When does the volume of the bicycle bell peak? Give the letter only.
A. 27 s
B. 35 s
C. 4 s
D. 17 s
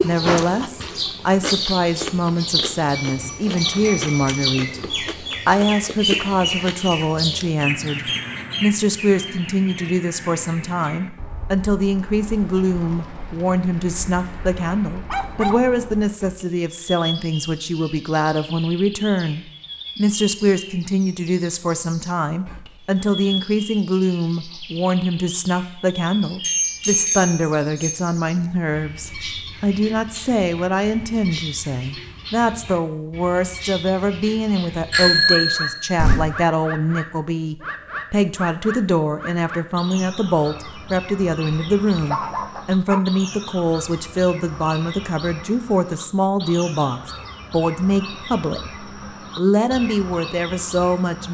B.